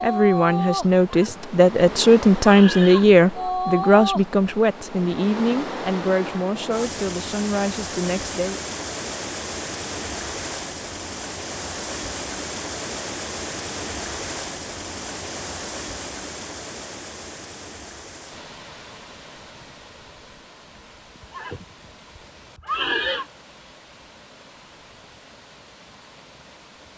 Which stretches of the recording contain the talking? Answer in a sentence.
The talking can be heard from 0.0 to 8.6 s.